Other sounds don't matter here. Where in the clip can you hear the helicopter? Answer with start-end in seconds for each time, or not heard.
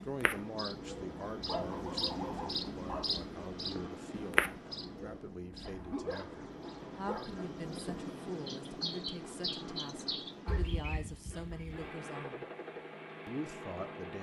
0.2-14.1.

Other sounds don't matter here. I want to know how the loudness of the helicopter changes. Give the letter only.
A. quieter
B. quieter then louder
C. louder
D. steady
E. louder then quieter
D.